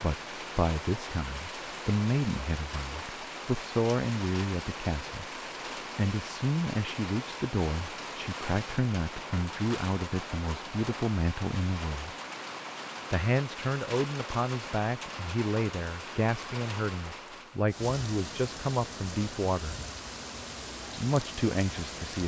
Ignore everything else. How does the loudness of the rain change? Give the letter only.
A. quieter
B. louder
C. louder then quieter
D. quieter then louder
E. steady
E.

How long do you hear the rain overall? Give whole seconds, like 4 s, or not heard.
22 s.